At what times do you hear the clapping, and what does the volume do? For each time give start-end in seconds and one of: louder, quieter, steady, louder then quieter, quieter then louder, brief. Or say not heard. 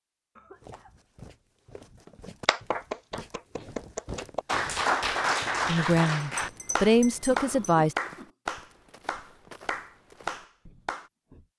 2.5-11.1 louder then quieter.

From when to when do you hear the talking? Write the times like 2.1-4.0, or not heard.
5.7-8.0.